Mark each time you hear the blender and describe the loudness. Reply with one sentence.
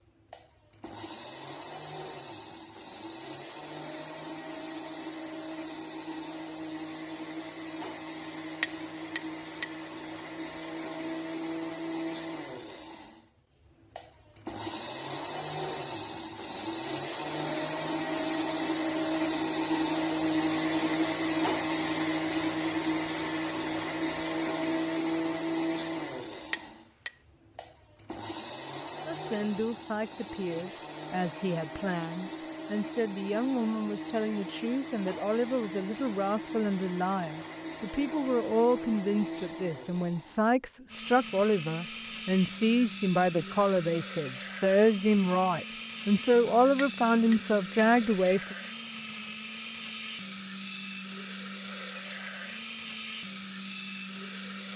You can hear the blender from 0.1 to 54.7 s, getting louder then quieter.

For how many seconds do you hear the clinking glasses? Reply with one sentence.
You can hear the clinking glasses for 3 seconds altogether.